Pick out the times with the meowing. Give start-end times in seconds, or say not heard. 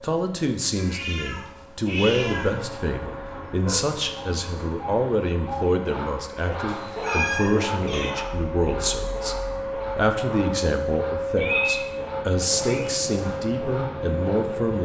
0.8-2.5, 6.7-8.1, 11.3-12.9.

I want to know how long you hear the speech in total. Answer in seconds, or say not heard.
14 s.